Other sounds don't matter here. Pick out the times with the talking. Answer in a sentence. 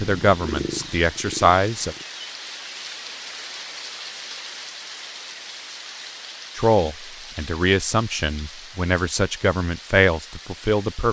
The talking can be heard from 0.0 to 1.9 s and from 6.5 to 11.0 s.